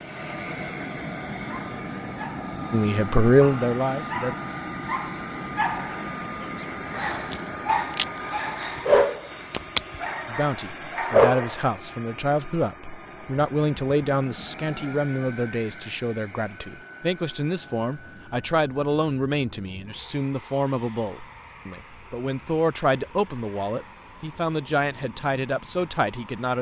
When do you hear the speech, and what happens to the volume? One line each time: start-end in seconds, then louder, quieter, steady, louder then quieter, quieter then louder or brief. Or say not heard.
2.7-4.3 brief
10.2-26.5 steady.